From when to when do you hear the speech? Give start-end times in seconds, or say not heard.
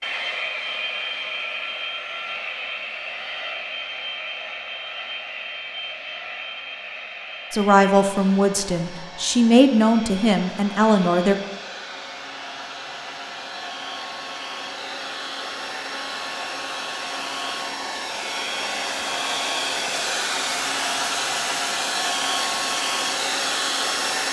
7.5-11.3.